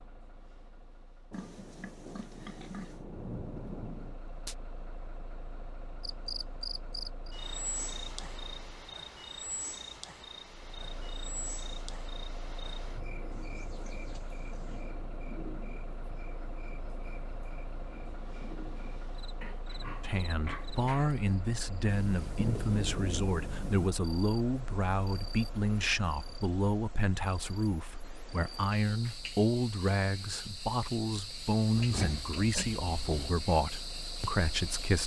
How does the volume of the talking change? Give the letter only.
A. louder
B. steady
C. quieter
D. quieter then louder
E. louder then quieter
B.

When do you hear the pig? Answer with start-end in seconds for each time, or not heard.
1.3-3.0, 13.3-14.9, 19.4-21.1, 31.8-33.4.